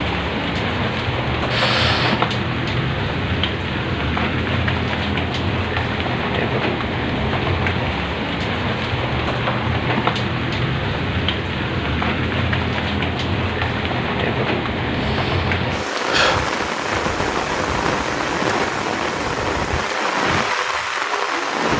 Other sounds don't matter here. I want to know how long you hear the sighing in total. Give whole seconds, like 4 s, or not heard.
2 s.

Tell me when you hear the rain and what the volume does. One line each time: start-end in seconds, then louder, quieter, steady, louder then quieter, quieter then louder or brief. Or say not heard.
0.0-21.7 steady.